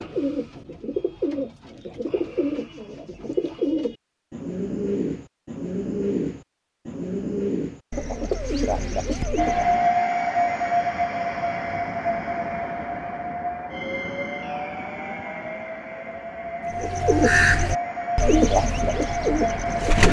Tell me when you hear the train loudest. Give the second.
10 s.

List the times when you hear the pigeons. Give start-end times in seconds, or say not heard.
0.0-9.8, 16.8-20.0.